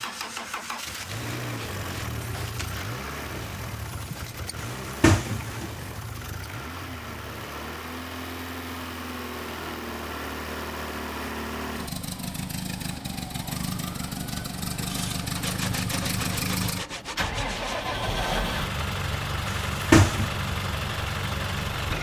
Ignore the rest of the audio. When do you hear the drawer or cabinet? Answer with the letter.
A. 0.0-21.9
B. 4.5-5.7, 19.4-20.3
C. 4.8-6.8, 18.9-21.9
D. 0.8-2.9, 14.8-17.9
B.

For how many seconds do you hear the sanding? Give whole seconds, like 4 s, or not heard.
5 s.